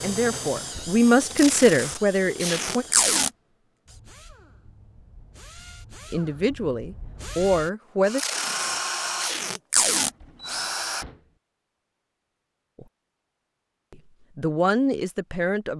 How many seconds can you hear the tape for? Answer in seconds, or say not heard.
4 s.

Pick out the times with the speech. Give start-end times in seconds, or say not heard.
0.0-2.9, 6.1-8.2, 13.9-15.7.